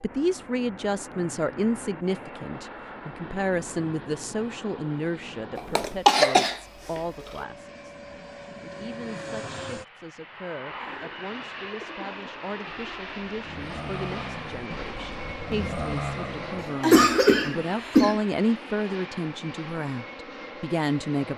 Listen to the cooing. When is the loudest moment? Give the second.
16 s.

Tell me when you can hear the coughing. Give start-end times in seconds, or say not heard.
5.5-7.0, 16.6-18.2.